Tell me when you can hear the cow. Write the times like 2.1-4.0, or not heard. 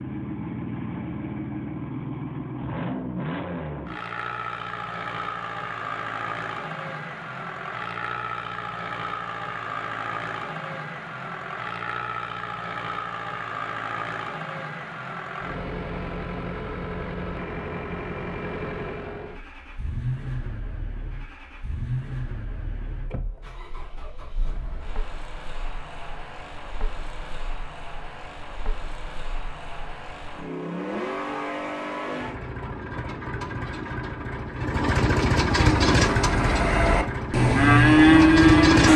35.5-38.9.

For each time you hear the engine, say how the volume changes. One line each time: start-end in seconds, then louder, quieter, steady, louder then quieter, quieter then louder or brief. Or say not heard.
0.0-38.9 quieter then louder.